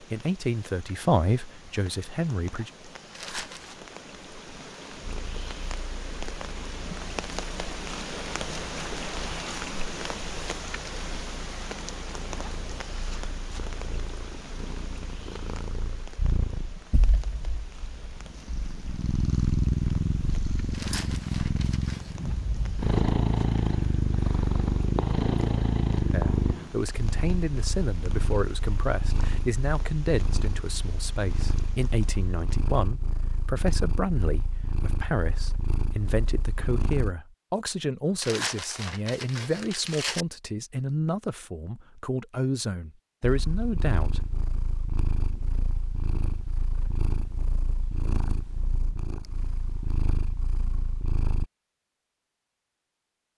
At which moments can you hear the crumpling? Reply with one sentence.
You can hear the crumpling from 3.1 to 3.8 s, from 20.7 to 22.2 s and from 38.2 to 40.2 s.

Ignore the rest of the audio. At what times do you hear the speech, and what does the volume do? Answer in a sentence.
You can hear the speech briefly from 0.0 to 2.7 s; and from 26.1 to 44.2 s, at a steady volume.